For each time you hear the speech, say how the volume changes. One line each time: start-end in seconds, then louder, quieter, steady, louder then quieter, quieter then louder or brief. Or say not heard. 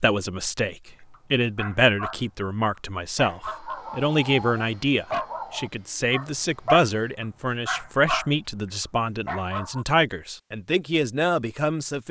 0.0-12.0 steady.